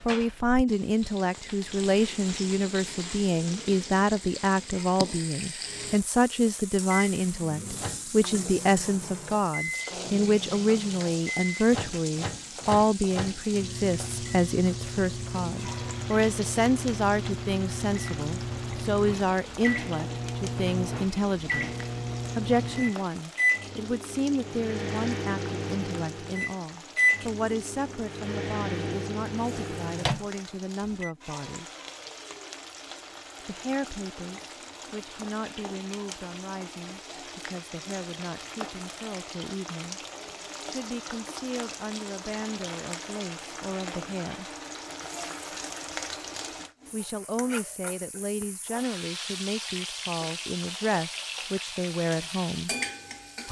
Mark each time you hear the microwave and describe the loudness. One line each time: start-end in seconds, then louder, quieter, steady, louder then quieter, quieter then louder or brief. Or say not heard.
5.7-31.1 louder.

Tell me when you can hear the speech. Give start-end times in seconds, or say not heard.
0.0-21.7, 22.4-31.6, 33.5-40.0, 40.6-44.5, 46.9-52.7.